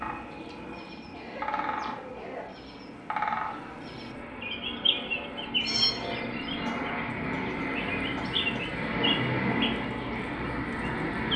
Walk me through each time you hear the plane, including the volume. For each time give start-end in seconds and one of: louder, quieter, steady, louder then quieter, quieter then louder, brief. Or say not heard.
0.0-11.3 louder.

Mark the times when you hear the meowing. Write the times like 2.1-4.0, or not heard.
5.6-6.2.